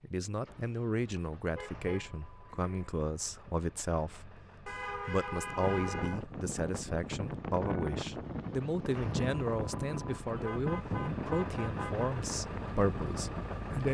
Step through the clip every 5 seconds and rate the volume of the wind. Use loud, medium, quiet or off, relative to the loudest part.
off, loud, loud.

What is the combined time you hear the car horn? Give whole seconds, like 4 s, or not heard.
5 s.